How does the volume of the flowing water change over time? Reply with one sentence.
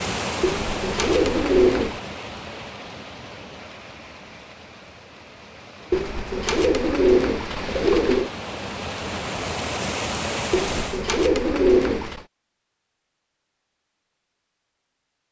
The volume of the flowing water goes down, then up.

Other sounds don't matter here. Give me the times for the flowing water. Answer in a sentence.
You can hear the flowing water from 0.0 to 11.1 s.